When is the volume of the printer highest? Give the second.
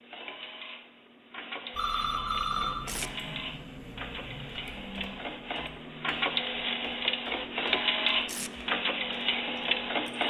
8 s.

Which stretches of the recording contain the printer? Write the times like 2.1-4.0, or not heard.
0.0-10.2.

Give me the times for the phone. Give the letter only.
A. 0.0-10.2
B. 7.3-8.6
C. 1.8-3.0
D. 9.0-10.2
C.